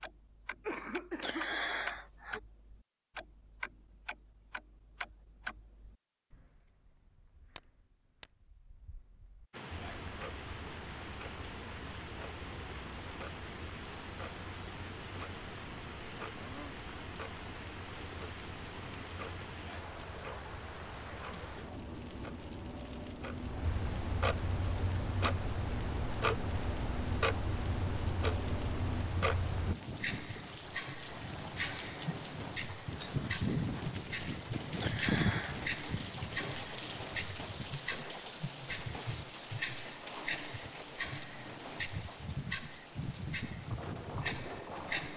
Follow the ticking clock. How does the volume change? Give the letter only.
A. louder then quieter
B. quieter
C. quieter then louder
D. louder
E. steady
D.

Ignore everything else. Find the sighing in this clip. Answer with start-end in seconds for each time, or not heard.
1.2-2.4, 34.8-35.5.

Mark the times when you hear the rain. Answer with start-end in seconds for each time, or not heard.
9.5-45.1.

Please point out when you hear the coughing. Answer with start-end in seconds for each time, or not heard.
0.6-1.6.